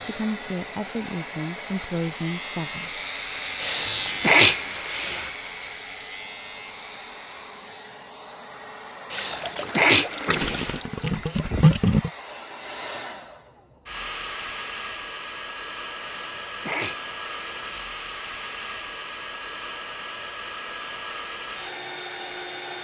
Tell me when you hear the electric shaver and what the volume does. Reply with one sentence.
The electric shaver can be heard from 0.0 to 7.9 s, getting louder then quieter.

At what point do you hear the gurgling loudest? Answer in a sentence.
The loudest moment of the gurgling is at 12 seconds.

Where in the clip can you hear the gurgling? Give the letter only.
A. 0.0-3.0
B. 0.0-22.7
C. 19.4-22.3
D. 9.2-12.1
D.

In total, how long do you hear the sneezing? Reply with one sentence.
The sneezing can be heard for 5 seconds in total.